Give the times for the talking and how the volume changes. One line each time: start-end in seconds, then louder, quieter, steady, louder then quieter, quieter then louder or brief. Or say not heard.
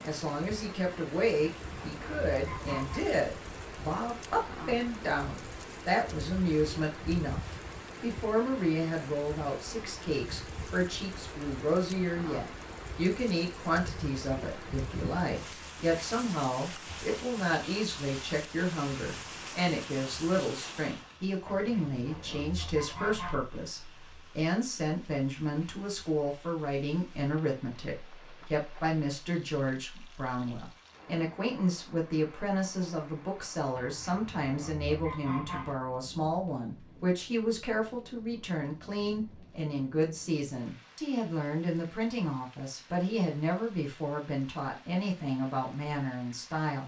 0.0-46.8 steady.